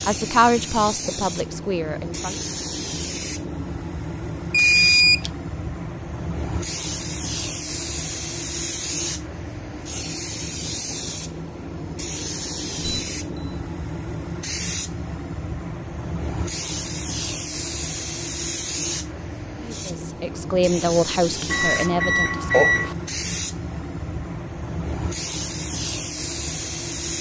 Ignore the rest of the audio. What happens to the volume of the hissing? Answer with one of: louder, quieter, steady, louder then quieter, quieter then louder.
steady.